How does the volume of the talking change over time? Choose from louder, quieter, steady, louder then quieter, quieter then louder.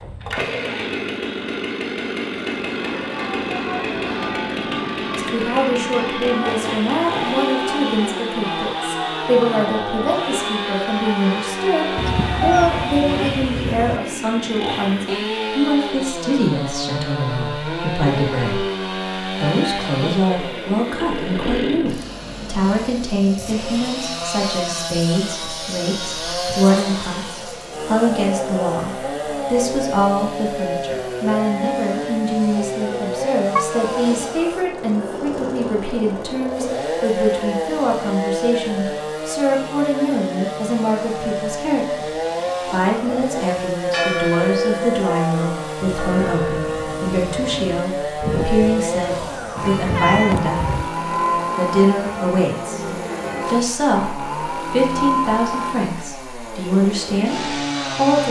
steady.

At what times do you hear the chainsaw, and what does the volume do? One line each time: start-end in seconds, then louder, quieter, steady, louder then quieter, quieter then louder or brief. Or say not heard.
0.0-58.2 steady.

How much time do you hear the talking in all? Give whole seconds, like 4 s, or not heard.
52 s.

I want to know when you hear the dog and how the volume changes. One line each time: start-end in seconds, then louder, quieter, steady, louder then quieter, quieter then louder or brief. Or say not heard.
not heard.